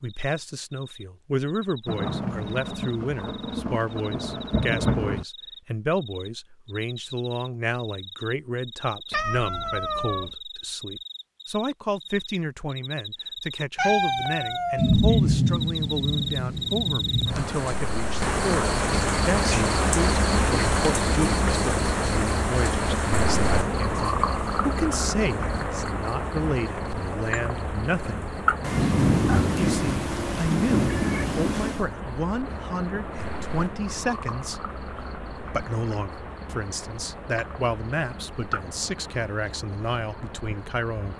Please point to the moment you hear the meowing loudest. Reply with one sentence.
The volume of the meowing peaks at 14 seconds.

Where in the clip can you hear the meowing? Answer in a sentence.
You can hear the meowing from 9.1 to 10.3 s, from 13.8 to 15.0 s and from 30.9 to 31.4 s.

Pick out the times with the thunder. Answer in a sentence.
The thunder can be heard from 1.9 to 5.2 s, from 14.8 to 17.5 s and from 28.6 to 31.9 s.